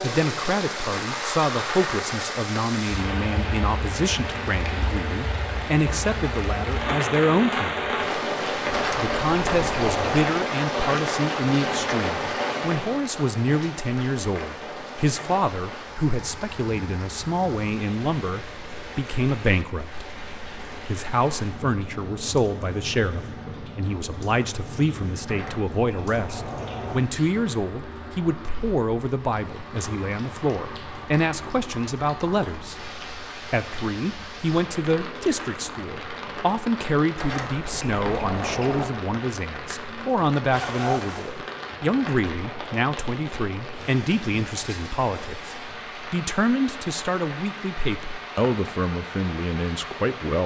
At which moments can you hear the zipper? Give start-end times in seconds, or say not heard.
40.5-41.4.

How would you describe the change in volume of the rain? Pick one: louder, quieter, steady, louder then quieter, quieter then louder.
quieter.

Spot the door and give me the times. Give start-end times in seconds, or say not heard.
8.7-10.3, 25.2-27.1, 37.1-38.9.